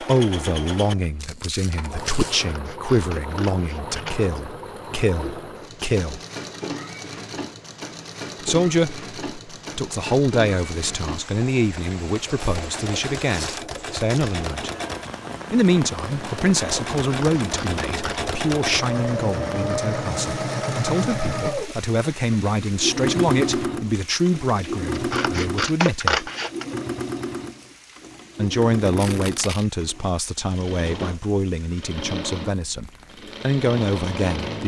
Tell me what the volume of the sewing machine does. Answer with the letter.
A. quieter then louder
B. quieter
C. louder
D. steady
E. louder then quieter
E.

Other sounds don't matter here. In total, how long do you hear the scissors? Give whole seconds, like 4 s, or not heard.
5 s.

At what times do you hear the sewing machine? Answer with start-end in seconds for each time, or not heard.
0.0-34.6.